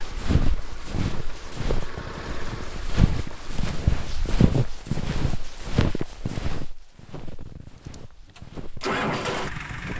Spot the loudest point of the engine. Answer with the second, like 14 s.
9 s.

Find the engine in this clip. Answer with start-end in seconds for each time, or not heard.
0.0-3.5, 7.9-9.9.